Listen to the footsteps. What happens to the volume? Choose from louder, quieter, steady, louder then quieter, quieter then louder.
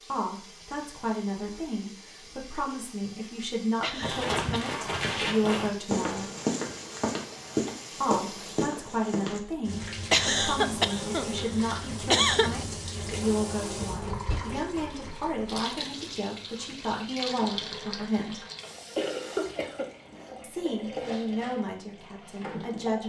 steady.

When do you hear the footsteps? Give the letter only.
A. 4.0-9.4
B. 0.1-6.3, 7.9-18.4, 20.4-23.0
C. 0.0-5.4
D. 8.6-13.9
A.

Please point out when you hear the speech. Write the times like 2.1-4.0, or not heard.
0.1-6.3, 7.9-18.4, 20.4-23.0.